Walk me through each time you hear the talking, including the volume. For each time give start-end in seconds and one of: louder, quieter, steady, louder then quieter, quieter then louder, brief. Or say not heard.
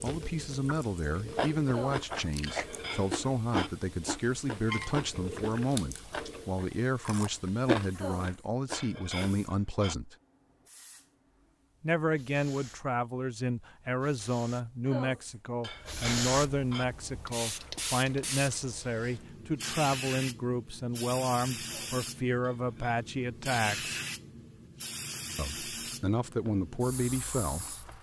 0.0-10.2 steady
11.8-23.9 steady
25.4-27.9 brief.